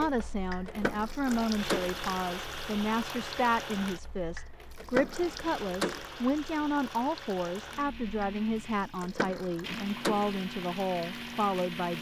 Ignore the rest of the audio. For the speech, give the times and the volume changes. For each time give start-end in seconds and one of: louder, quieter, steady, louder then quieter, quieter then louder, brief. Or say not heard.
0.0-11.9 steady.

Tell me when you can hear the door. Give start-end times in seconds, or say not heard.
0.7-1.9, 4.8-6.0, 9.0-10.4.